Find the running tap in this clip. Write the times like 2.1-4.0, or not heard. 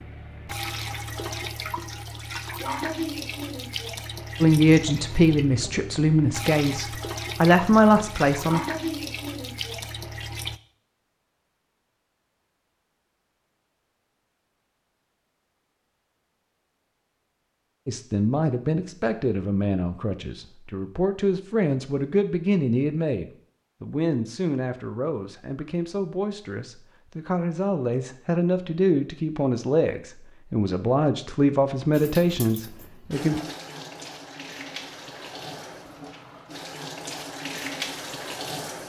0.0-10.6, 31.9-38.8.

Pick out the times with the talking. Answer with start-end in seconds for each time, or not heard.
4.4-8.6, 17.9-33.4.